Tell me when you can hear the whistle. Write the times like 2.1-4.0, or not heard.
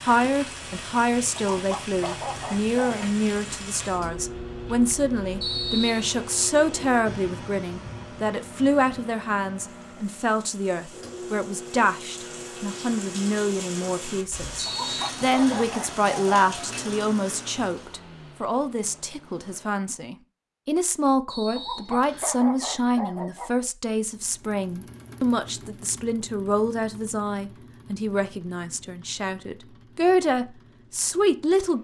5.4-6.2, 14.6-15.7, 21.2-22.4.